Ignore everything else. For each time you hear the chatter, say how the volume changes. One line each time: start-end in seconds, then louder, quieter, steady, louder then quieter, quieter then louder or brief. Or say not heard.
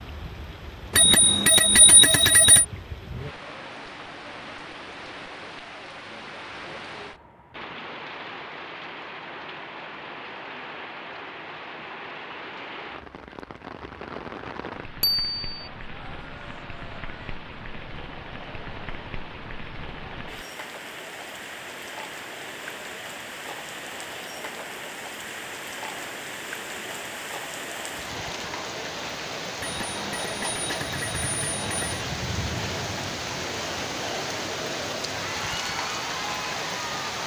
15.5-37.2 louder.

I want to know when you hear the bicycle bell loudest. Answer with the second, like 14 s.
2 s.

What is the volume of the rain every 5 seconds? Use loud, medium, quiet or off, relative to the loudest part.
medium, medium, medium, medium, medium, loud, loud, loud.